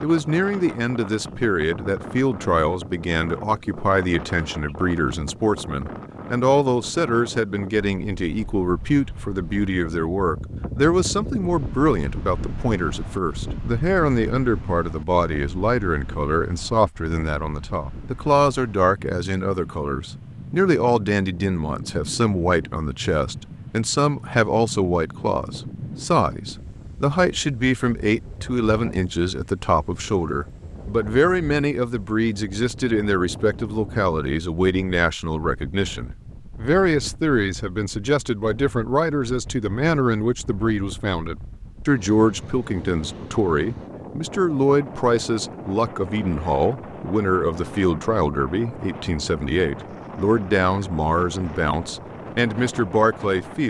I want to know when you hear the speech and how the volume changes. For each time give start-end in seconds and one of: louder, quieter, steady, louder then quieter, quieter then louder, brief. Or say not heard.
0.0-53.6 steady.